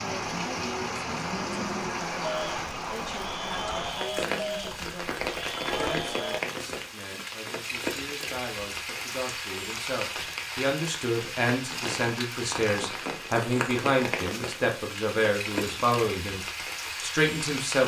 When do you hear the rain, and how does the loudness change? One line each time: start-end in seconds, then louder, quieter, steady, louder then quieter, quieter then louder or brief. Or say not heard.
0.0-17.8 steady.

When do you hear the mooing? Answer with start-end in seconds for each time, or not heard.
0.0-6.4.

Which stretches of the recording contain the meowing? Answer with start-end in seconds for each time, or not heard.
not heard.